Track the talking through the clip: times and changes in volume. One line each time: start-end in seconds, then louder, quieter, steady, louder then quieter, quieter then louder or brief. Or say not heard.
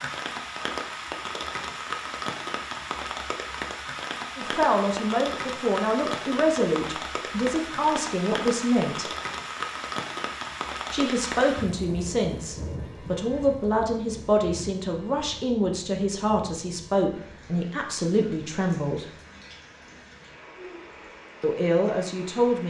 4.3-9.1 steady
10.9-19.1 steady
21.4-22.6 brief.